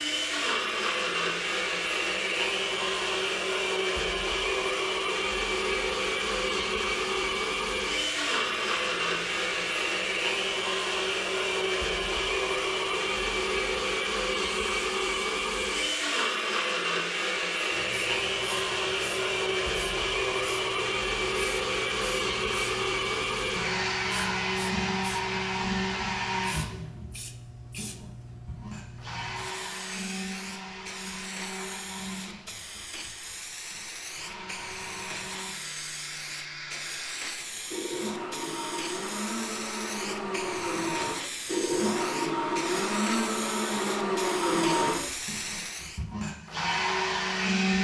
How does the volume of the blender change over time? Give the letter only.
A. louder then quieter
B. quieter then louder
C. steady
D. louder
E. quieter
B.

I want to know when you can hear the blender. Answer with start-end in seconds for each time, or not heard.
0.0-47.7.